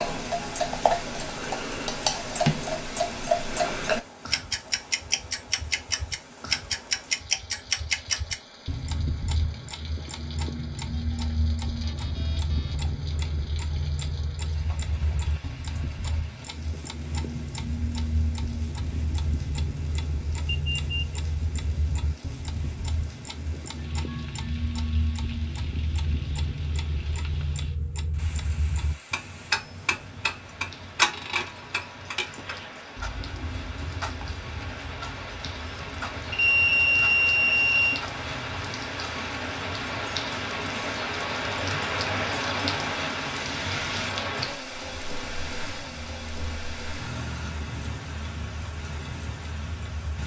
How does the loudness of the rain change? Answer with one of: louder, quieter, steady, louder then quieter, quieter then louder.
louder.